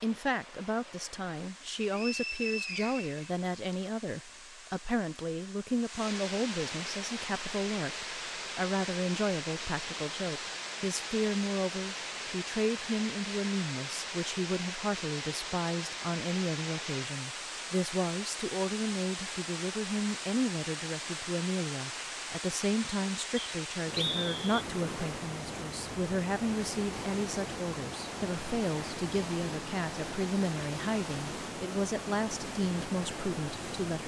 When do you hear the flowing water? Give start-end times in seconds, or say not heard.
0.0-34.0.